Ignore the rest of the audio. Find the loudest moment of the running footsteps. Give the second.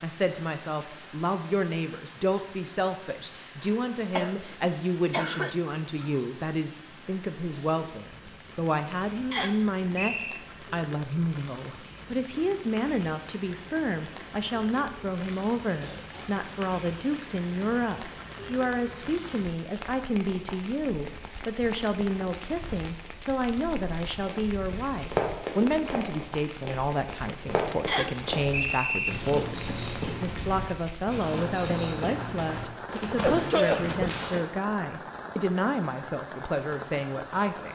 25 s.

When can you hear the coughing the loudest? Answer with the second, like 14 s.
34 s.